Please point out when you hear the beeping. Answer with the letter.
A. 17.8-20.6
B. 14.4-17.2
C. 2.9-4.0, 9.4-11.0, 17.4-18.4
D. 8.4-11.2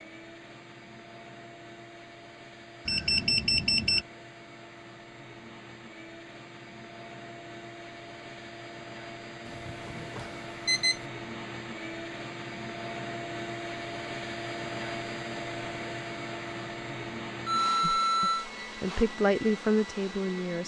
C.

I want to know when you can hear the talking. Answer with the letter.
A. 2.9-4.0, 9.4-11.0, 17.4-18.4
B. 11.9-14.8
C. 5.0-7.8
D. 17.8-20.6
D.